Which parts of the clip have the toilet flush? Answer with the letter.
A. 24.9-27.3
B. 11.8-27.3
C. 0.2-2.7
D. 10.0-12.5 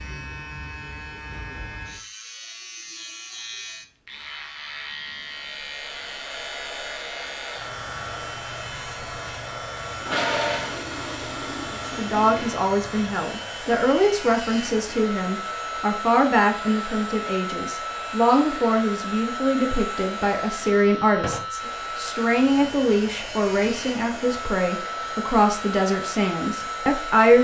D.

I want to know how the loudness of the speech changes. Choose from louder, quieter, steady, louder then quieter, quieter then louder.
steady.